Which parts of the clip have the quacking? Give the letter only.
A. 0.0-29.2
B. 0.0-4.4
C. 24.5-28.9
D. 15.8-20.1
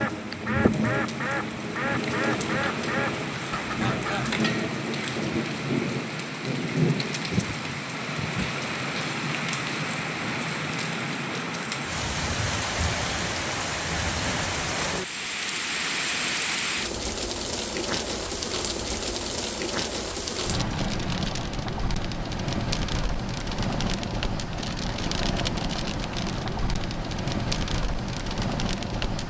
B.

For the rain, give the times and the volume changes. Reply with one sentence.
The rain can be heard from 0.0 to 29.2 s, at a steady volume.